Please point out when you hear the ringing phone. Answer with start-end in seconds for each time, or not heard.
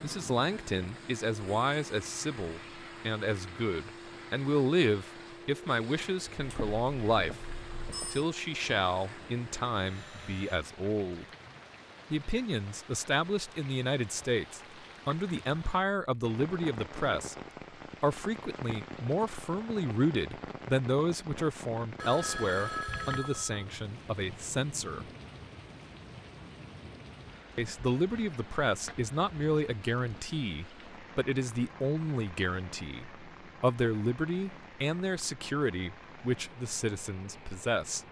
6.3-8.2, 21.9-23.6.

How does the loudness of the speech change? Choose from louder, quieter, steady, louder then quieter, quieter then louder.
steady.